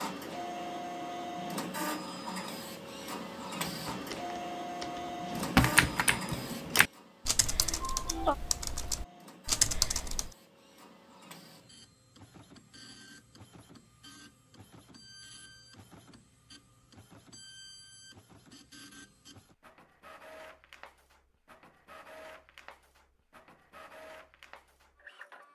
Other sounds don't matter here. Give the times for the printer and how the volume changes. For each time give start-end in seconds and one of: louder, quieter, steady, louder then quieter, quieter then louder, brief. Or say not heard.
0.0-25.5 quieter.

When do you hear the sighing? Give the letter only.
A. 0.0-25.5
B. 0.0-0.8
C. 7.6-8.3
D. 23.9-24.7
C.